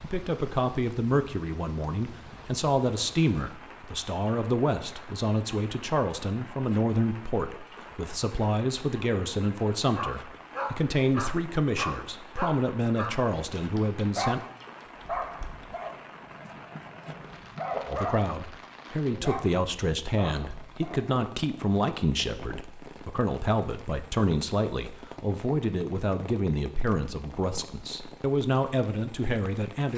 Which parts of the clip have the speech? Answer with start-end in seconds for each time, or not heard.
0.0-14.4, 17.9-29.9.